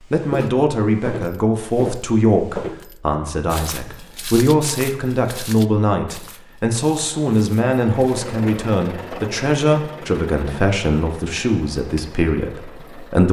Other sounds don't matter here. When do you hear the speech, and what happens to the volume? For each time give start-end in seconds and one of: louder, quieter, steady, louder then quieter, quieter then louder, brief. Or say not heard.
0.1-13.2 steady.